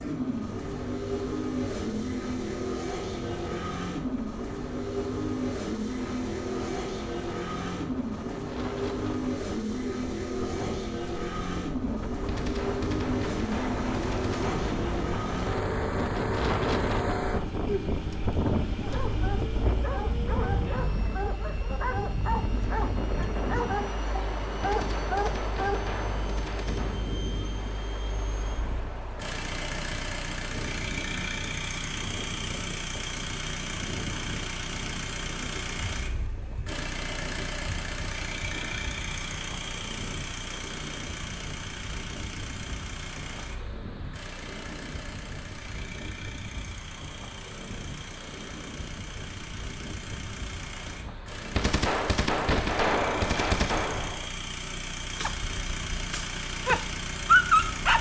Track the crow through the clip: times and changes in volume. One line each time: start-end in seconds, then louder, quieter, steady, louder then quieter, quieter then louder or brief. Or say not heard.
not heard.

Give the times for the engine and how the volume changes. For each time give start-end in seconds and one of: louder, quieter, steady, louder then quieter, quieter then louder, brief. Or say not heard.
0.0-57.9 quieter.